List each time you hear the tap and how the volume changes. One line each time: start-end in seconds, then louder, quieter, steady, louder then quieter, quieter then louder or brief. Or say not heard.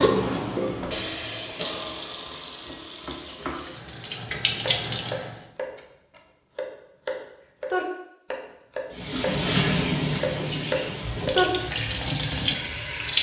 0.0-5.4 quieter then louder
8.9-13.1 quieter then louder.